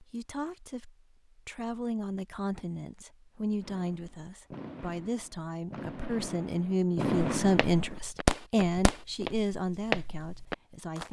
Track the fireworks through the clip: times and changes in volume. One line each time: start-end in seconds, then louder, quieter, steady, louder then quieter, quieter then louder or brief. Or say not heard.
3.6-9.0 louder.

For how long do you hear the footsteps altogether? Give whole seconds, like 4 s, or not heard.
4 s.